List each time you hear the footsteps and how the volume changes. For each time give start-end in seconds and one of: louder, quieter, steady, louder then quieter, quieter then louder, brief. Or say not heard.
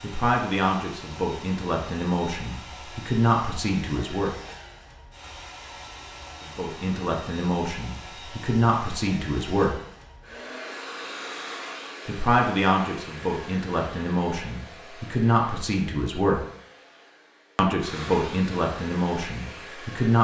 not heard.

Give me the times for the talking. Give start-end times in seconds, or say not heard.
0.0-4.3, 6.5-9.8, 12.1-16.4, 17.6-20.1.